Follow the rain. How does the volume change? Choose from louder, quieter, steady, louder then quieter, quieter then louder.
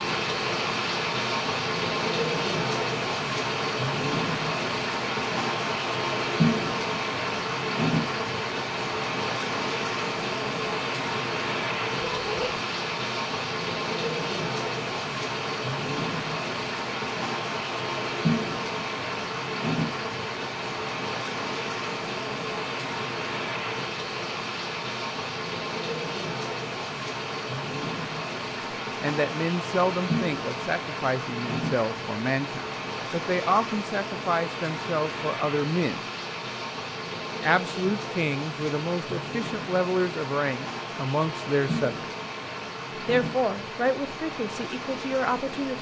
quieter.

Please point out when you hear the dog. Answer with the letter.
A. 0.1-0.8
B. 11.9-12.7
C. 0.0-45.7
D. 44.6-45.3
B.